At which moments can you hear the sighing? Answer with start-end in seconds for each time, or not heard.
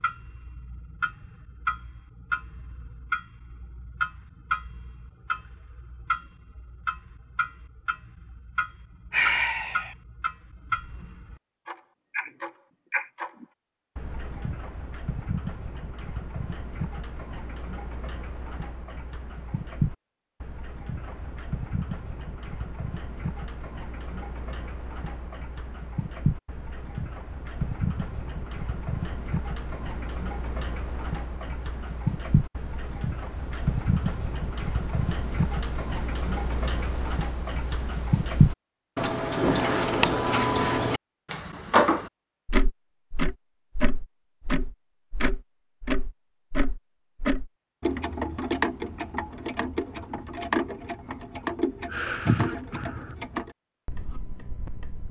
9.1-9.9, 51.9-53.1.